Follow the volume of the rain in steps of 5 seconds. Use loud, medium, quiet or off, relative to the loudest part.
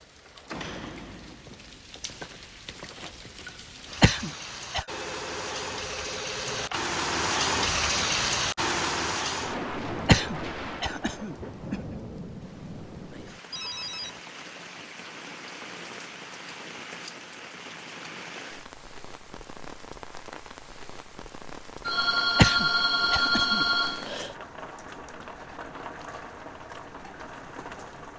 quiet, loud, medium, quiet, quiet, quiet.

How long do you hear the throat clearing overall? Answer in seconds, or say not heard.
4 s.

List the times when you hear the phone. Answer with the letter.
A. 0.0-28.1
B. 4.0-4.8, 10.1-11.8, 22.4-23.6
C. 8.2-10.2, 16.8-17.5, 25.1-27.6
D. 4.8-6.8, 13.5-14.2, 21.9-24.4
D.